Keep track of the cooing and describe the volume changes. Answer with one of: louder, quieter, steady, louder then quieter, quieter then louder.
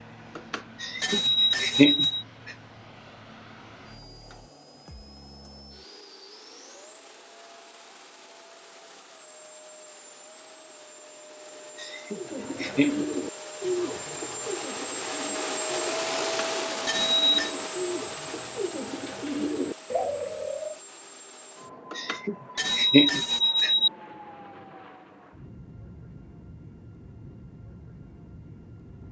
quieter then louder.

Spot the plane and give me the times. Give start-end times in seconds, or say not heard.
0.0-29.0.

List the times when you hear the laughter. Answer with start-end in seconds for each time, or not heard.
0.8-2.0, 11.8-13.1, 21.9-23.7.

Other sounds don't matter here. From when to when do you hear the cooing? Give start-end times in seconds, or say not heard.
12.2-20.8.